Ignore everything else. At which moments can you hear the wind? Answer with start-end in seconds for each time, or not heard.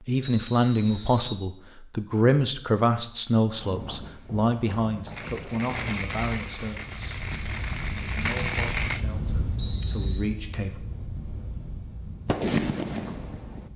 3.5-13.7.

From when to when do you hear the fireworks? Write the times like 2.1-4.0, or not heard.
5.1-9.0, 12.2-13.7.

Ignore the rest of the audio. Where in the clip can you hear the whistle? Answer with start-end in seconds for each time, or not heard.
0.2-1.4, 9.6-10.2.